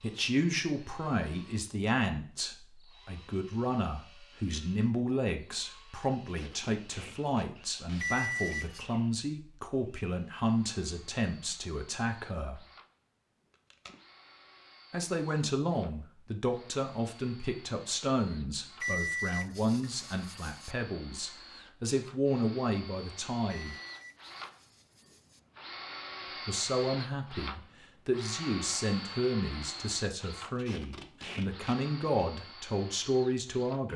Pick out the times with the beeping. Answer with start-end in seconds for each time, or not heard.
8.0-8.8, 18.8-20.8, 23.4-25.4.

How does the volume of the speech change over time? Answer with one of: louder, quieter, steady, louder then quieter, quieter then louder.
steady.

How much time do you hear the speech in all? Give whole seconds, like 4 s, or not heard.
29 s.